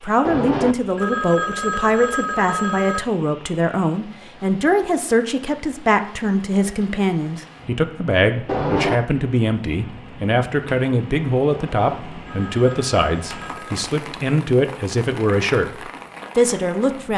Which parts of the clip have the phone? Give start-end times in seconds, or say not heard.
0.2-3.0, 8.4-9.1, 11.5-13.8.